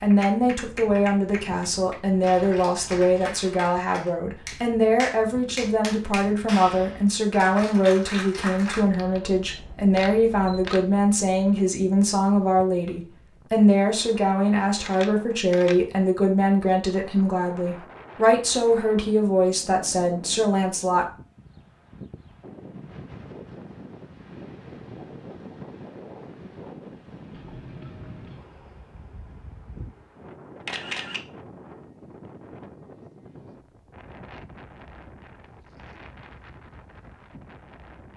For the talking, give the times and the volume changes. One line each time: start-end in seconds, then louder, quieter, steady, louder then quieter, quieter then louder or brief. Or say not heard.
0.0-21.1 steady.